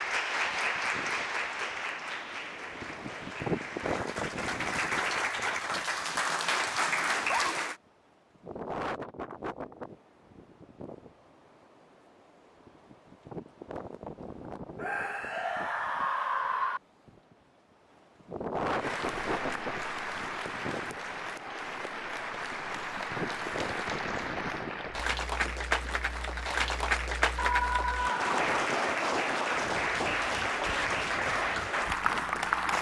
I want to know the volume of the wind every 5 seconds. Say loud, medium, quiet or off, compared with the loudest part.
loud, loud, medium, loud, loud, loud, medium.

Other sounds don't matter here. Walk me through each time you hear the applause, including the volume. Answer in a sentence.
You can hear the applause from 0.0 to 7.8 s, getting quieter then louder; and from 18.8 to 32.7 s, getting louder.